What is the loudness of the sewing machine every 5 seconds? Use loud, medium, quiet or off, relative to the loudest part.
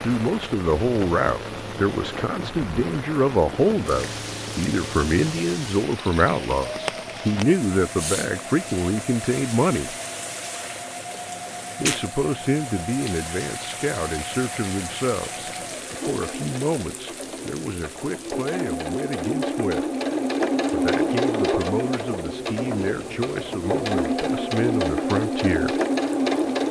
quiet, quiet, quiet, medium, loud, loud.